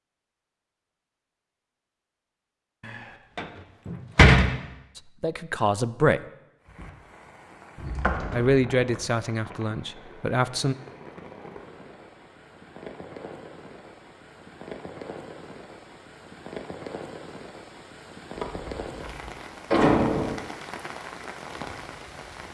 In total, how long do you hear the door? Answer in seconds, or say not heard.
5 s.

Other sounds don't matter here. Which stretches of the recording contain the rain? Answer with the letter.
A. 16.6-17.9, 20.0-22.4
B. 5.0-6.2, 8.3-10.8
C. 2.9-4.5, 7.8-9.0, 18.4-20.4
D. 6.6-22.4
D.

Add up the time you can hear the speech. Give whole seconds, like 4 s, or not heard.
4 s.